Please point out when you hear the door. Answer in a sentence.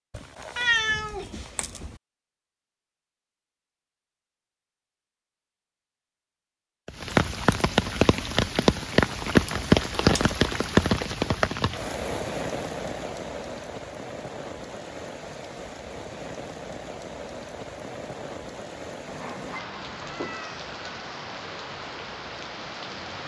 You can't hear the door here.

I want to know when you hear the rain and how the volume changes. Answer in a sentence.
You can hear the rain from 6.8 to 23.2 s, getting quieter.